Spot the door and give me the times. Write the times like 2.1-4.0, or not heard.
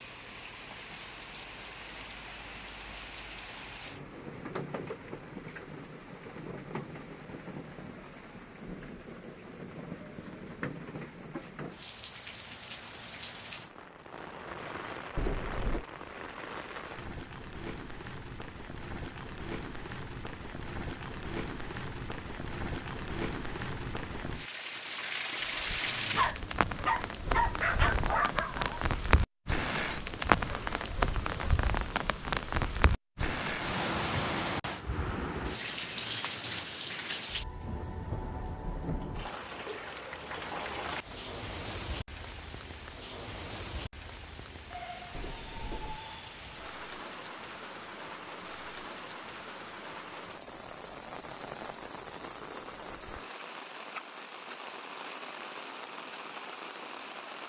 15.2-15.8, 27.2-28.0, 45.1-46.0.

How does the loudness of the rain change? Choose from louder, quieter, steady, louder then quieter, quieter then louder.
louder then quieter.